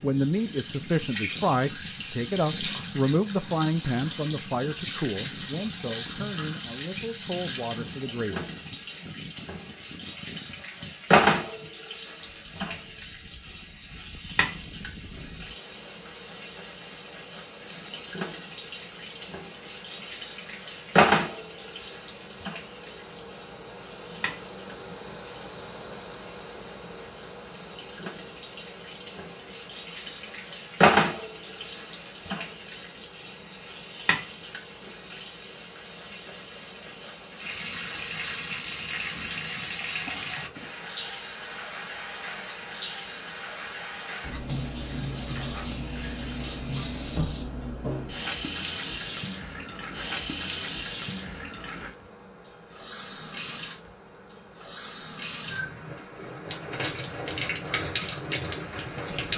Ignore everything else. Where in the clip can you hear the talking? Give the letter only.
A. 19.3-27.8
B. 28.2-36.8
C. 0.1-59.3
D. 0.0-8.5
D.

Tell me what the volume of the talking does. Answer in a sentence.
The loudness of the talking goes down.